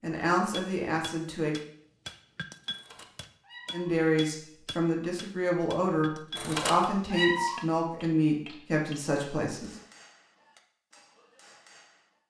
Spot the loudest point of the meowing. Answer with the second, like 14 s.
7 s.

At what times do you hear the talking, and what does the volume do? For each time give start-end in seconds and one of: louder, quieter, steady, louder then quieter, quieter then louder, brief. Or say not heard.
0.0-1.6 brief
3.7-9.8 steady.